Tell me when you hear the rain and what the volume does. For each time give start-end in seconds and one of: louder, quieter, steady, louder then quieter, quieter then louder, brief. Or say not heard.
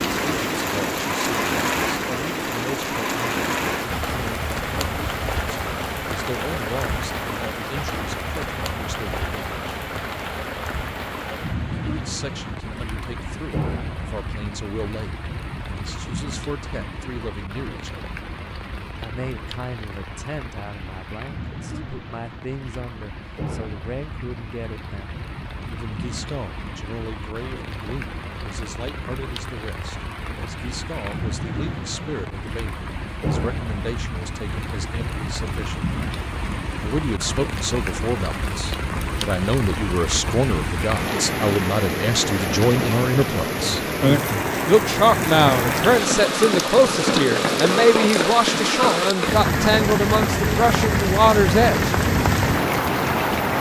0.0-53.5 quieter then louder.